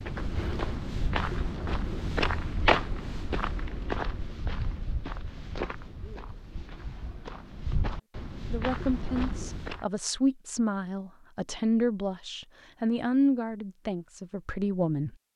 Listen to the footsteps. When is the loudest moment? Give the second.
3 s.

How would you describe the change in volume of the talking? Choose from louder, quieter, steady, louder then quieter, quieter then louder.
louder then quieter.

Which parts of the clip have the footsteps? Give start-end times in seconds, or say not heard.
0.0-9.8.